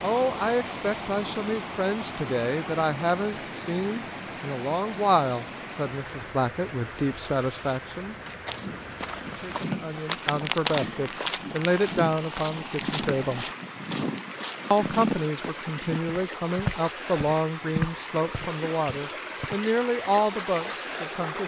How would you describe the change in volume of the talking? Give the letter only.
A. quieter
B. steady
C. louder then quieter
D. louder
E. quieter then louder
B.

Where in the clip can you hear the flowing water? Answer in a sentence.
You can hear the flowing water from 0.0 to 21.4 s.